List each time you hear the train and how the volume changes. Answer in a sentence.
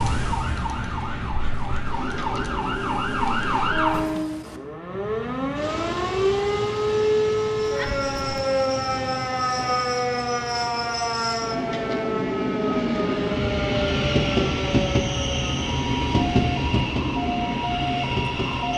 You can hear the train from 0.0 to 18.7 s, getting louder.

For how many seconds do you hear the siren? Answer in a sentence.
You can hear the siren for 19 seconds altogether.